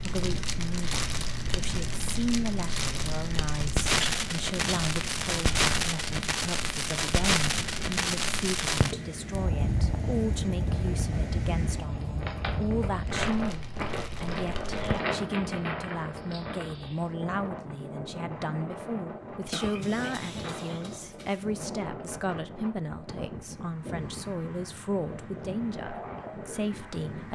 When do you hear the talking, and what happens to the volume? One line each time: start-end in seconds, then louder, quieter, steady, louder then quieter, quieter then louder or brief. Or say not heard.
0.0-27.3 steady.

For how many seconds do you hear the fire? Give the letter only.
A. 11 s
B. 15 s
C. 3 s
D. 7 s
B.